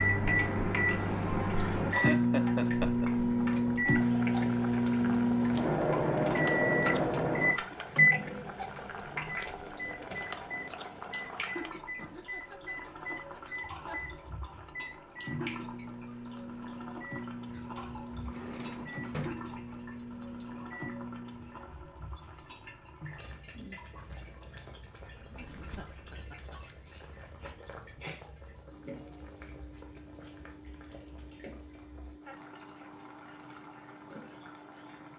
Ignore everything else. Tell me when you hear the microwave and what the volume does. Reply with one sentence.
The microwave can be heard from 0.0 to 21.7 s, getting quieter.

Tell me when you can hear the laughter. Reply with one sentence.
The laughter can be heard from 1.6 to 3.1 s, from 11.9 to 14.0 s and from 25.6 to 26.6 s.